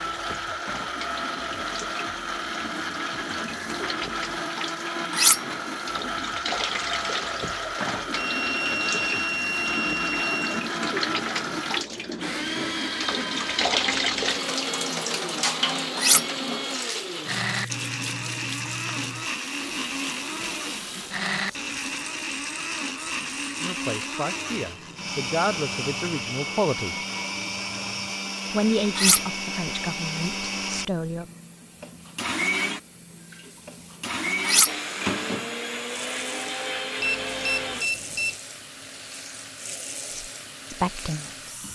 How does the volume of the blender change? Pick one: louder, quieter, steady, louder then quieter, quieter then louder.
steady.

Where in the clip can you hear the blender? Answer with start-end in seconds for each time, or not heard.
0.0-37.9.